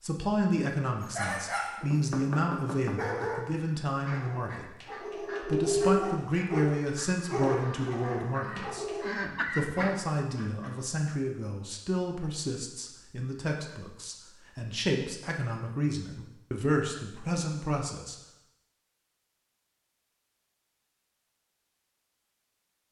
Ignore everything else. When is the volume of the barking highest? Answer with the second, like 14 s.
6 s.